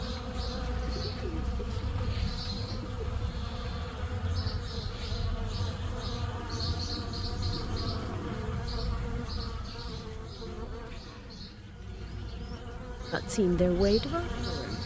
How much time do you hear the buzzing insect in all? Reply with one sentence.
The buzzing insect can be heard for 15 seconds in total.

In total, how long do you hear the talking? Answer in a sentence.
The talking can be heard for 2 seconds in total.